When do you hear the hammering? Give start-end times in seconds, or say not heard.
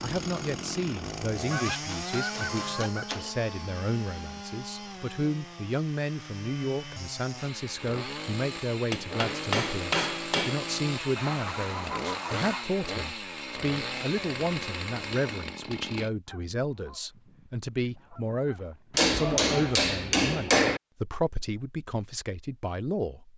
1.6-3.3, 8.9-10.7, 18.9-20.8.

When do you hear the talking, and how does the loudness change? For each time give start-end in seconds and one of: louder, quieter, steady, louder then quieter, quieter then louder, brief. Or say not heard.
0.0-23.3 steady.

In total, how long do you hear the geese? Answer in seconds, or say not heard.
6 s.